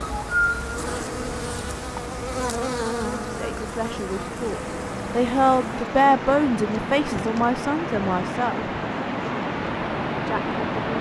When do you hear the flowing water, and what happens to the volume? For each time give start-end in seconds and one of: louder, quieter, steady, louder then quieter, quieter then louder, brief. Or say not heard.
0.1-10.9 louder.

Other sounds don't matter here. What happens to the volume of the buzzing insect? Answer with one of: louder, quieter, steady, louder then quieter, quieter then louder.
quieter.